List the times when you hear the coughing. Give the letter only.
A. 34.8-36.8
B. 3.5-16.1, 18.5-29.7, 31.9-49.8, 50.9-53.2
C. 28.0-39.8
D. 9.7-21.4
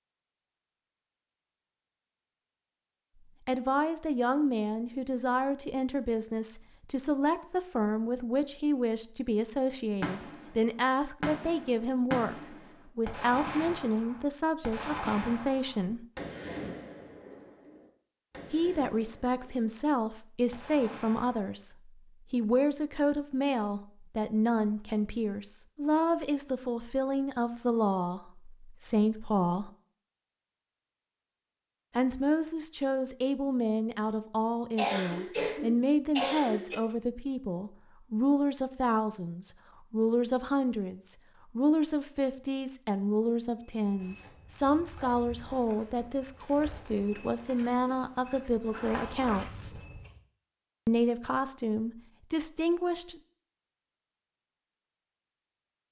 A.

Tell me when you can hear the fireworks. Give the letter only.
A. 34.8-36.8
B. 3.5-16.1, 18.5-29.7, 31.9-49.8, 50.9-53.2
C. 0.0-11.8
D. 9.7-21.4
D.